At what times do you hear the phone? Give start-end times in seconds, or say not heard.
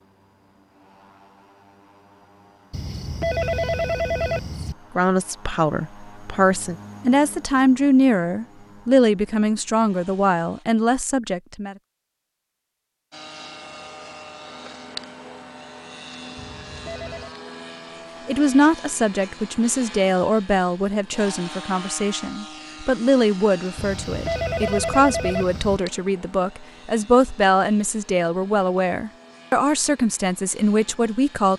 2.7-4.8, 16.4-17.4, 23.8-25.8.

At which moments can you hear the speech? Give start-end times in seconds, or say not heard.
5.0-11.8, 18.2-31.5.